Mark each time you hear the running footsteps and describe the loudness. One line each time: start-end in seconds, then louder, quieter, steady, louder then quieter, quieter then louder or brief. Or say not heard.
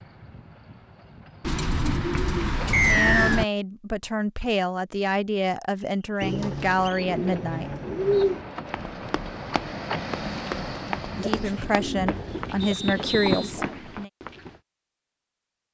8.7-14.6 louder.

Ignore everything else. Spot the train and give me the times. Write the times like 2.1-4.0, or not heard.
0.0-3.5, 6.8-12.6.